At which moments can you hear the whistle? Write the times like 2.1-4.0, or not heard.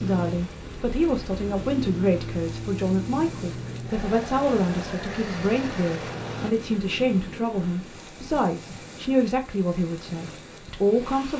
not heard.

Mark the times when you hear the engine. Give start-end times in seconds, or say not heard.
0.0-6.5.